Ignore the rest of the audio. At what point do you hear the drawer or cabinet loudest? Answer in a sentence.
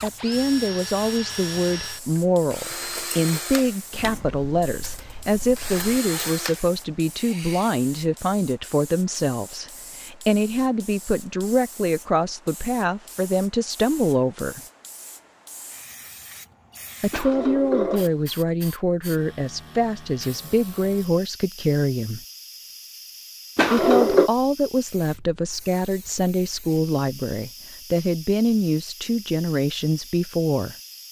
The loudest moment of the drawer or cabinet is at 24 seconds.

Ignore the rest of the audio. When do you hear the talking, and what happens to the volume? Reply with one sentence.
The talking can be heard from 0.0 to 14.6 s, at a steady volume; from 17.0 to 22.2 s, at a steady volume; and from 23.7 to 30.8 s, at a steady volume.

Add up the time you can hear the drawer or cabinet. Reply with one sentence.
You can hear the drawer or cabinet for 4 seconds altogether.